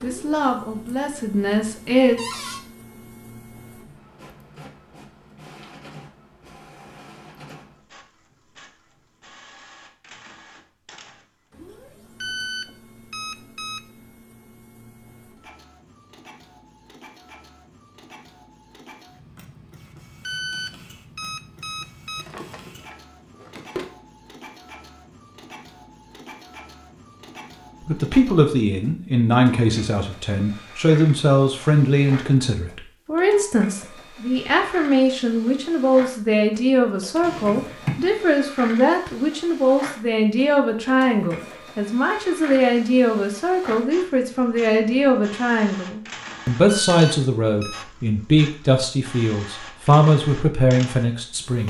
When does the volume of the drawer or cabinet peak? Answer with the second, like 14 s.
38 s.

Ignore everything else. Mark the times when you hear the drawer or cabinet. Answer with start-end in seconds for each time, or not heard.
2.1-2.6, 22.1-23.9, 37.2-38.2.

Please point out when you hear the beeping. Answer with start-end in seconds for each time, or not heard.
12.2-13.8, 20.2-22.2, 46.6-47.9.